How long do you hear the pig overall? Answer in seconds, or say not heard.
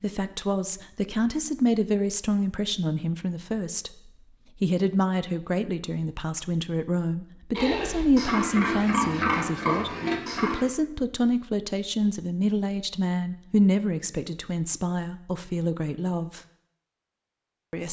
3 s.